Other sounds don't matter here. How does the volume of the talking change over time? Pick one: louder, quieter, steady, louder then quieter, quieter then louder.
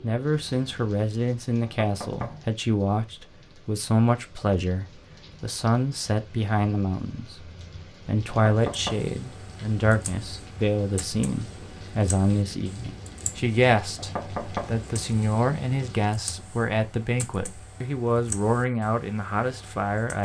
steady.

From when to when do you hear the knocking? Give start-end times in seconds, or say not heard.
1.6-2.5, 8.2-9.1, 13.9-14.8.